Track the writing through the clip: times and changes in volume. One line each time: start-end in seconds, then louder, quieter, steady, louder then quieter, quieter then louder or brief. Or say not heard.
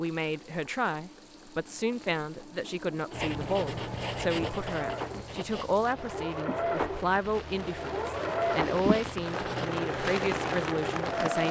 3.1-9.7 quieter then louder.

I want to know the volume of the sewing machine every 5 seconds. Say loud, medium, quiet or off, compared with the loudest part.
quiet, loud, loud.